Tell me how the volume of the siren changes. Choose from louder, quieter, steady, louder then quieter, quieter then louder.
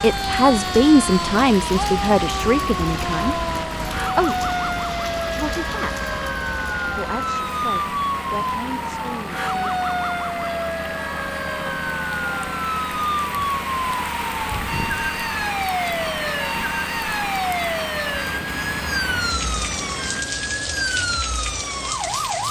steady.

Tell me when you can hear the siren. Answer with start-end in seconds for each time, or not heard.
0.0-22.4.